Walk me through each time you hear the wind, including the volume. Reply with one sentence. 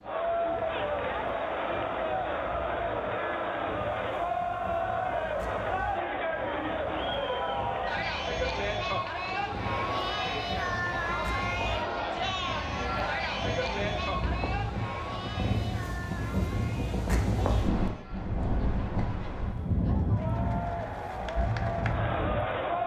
The wind can be heard from 0.0 to 22.8 s, getting louder.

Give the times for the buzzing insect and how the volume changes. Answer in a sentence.
The buzzing insect can't be heard in this clip.